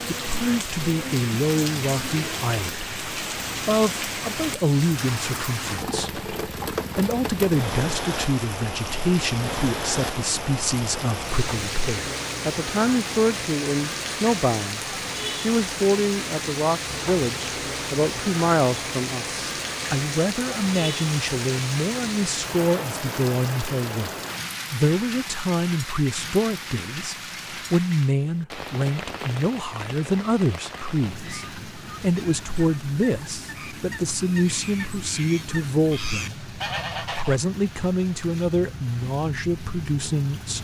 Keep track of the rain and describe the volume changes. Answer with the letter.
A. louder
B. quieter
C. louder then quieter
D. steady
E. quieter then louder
B.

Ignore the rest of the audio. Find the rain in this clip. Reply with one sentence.
The rain can be heard from 0.0 to 40.5 s.